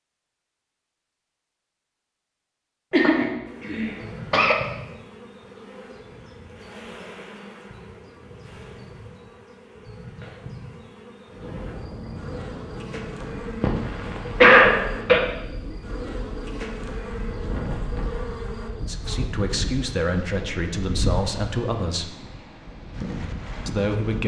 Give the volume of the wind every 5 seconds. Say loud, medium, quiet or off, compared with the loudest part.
off, off, loud, loud, loud.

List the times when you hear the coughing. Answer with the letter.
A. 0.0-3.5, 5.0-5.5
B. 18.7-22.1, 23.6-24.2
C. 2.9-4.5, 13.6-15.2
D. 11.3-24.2
C.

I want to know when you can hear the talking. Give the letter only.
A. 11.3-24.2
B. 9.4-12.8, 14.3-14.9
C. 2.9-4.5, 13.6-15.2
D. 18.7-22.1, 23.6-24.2
D.